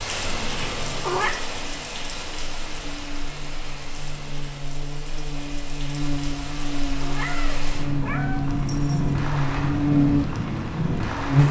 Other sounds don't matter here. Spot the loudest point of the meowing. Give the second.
1 s.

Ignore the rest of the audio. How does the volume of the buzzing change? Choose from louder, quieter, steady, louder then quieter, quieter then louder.
louder.